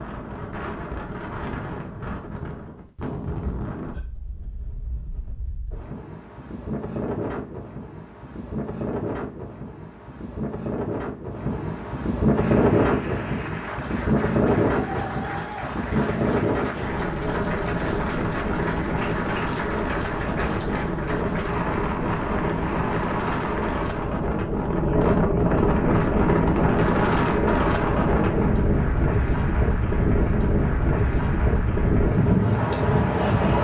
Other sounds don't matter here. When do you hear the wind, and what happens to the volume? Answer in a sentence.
The wind can be heard from 0.0 to 33.6 s, getting louder.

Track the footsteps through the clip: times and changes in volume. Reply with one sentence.
The footsteps can't be heard in this clip.